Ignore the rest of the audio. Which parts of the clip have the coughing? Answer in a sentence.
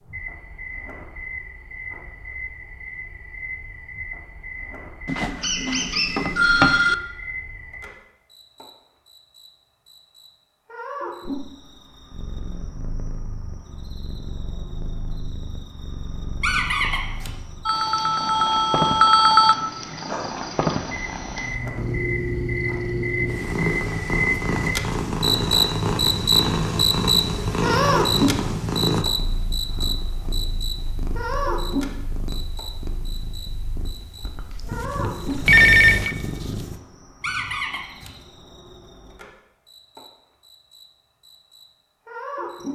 You can't hear the coughing here.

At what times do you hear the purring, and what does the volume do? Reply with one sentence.
You can hear the purring from 12.1 to 36.8 s, getting louder then quieter.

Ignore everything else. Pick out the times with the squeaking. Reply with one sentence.
The squeaking can be heard from 5.4 to 6.2 s, from 16.4 to 17.4 s and from 37.2 to 38.1 s.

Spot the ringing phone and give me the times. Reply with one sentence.
The ringing phone can be heard from 5.0 to 7.0 s, from 17.6 to 19.6 s and from 35.5 to 36.1 s.